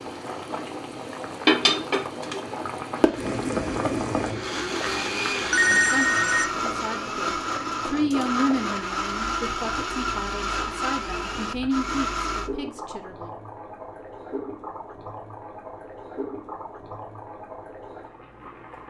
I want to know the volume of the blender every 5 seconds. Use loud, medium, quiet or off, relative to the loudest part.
medium, loud, loud, off.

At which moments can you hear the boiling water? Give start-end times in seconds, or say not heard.
0.0-18.8.